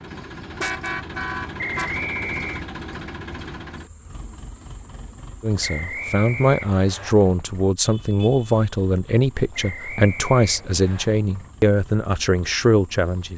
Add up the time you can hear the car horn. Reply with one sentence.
You can hear the car horn for 3 seconds altogether.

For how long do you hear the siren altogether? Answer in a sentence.
You can't hear the siren here.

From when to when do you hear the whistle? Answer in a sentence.
You can hear the whistle from 1.6 to 2.6 s, from 5.6 to 7.2 s and from 9.5 to 11.1 s.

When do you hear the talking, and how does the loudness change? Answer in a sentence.
The talking can be heard from 5.4 to 13.3 s, at a steady volume.